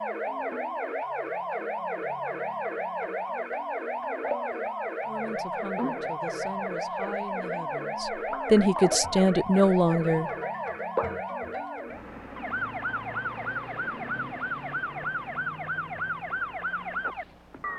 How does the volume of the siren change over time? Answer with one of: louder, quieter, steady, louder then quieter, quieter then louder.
steady.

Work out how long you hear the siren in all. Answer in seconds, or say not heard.
18 s.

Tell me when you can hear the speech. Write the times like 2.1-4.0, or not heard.
5.0-10.3.